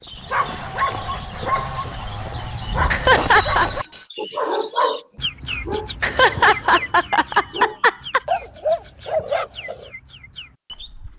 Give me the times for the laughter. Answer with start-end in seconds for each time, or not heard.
2.9-3.7, 6.0-8.2.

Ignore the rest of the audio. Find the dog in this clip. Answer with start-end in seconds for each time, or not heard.
0.1-9.9.